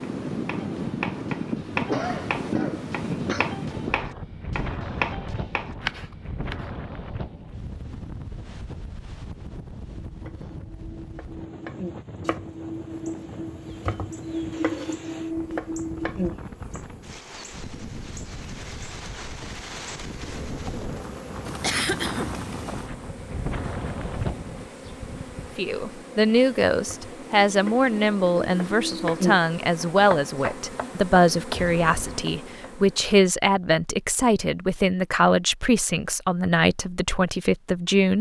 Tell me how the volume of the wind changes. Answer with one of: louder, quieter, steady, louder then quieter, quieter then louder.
quieter then louder.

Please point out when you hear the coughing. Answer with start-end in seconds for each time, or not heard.
1.9-3.5, 21.6-22.3, 31.6-32.2.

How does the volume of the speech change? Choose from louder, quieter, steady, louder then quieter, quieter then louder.
steady.